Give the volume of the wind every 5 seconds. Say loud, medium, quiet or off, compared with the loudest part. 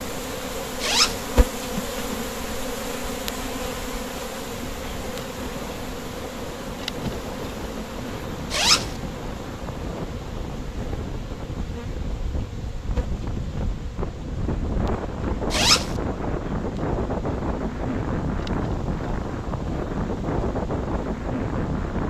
quiet, medium, medium, loud, loud.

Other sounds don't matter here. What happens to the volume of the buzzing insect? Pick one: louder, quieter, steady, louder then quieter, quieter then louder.
quieter.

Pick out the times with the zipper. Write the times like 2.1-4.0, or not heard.
0.8-1.2, 8.5-8.9, 15.5-15.9.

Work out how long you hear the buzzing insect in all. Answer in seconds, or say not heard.
22 s.